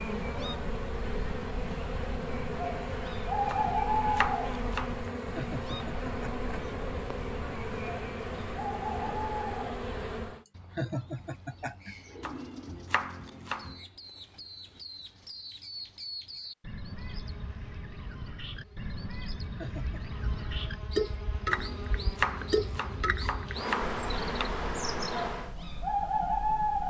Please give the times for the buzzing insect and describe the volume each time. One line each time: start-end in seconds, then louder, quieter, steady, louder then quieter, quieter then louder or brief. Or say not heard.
0.0-10.4 steady
16.9-25.6 louder.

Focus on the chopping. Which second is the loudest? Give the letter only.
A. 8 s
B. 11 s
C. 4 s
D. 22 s
D.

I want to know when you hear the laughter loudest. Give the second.
11 s.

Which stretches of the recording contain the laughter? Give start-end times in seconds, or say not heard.
5.3-6.3, 10.8-11.9, 19.6-20.1.